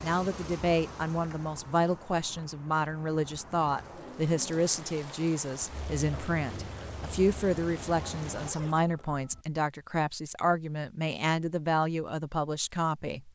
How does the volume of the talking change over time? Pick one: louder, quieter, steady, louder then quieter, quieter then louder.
steady.